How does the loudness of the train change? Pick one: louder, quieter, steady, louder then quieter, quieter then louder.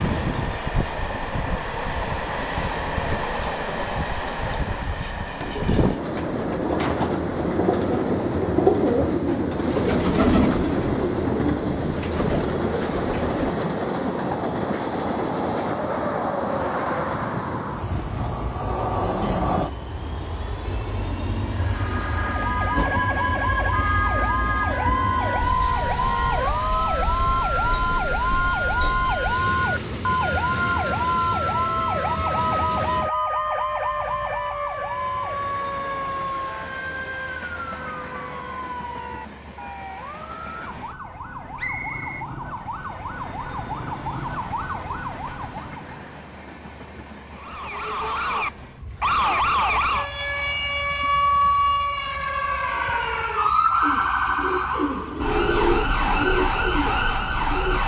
quieter.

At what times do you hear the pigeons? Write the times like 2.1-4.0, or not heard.
5.5-13.6, 53.8-57.8.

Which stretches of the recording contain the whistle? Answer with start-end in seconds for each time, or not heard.
41.5-42.2.